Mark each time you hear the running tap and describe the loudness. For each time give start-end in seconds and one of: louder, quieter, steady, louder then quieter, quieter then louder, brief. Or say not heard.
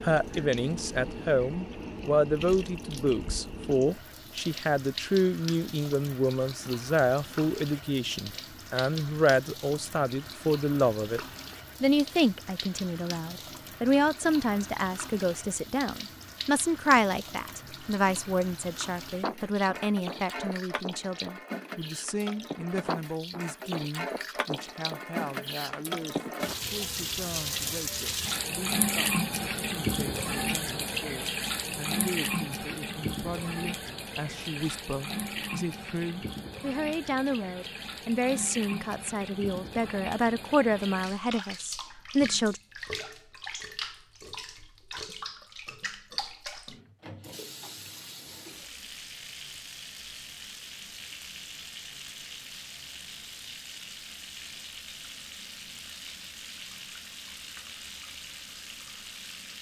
0.0-59.5 louder then quieter.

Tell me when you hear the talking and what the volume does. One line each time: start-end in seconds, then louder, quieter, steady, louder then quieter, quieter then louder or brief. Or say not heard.
0.0-11.2 steady
11.8-42.6 quieter then louder.